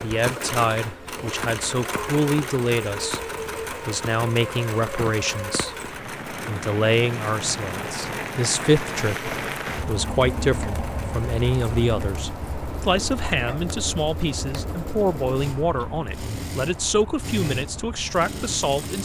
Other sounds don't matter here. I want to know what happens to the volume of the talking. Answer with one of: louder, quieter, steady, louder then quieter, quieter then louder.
steady.